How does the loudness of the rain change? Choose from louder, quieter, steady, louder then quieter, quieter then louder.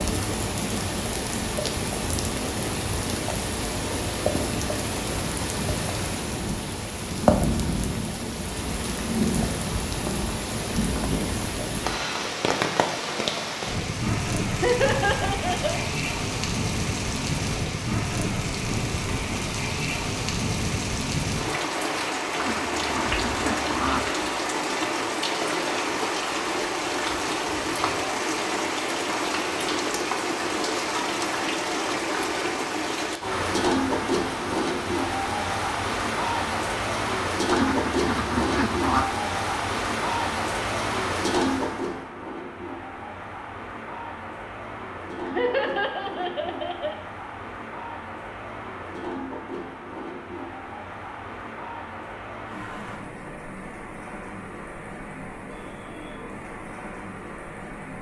quieter.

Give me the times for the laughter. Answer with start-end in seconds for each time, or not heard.
14.5-15.8, 45.2-47.0.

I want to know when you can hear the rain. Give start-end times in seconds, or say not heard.
0.0-57.9.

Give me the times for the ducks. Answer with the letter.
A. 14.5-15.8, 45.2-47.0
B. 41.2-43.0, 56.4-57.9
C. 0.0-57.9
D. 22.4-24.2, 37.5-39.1
D.